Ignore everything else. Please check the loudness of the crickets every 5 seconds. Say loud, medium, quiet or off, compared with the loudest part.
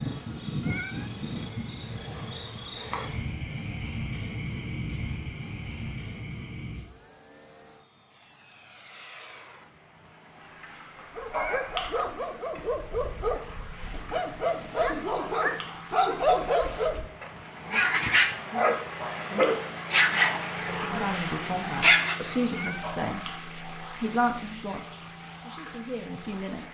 loud, loud, medium, quiet, quiet, quiet.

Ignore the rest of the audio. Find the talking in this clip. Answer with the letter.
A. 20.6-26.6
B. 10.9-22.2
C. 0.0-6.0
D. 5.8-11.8
A.